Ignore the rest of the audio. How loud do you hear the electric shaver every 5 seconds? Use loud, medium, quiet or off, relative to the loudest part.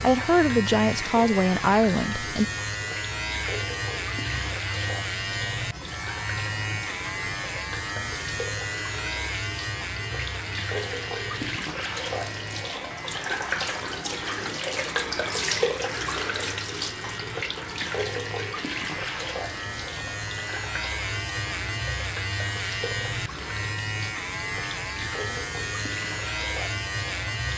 loud, loud, medium, medium, loud, loud.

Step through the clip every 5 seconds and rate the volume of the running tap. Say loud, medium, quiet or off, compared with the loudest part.
medium, medium, loud, loud, medium, medium.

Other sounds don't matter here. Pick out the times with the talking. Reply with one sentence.
The talking can be heard from 0.0 to 2.5 s.